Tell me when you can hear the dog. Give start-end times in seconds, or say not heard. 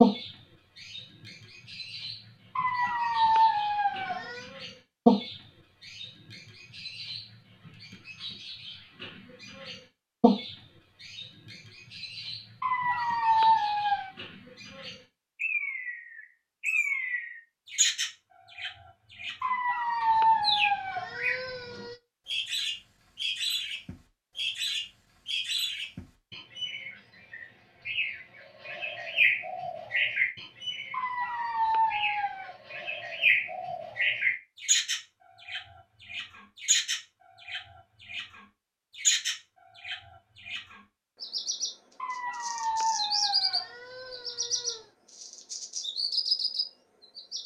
2.5-4.5, 12.6-14.2, 19.4-21.9, 30.9-32.5, 42.0-44.9.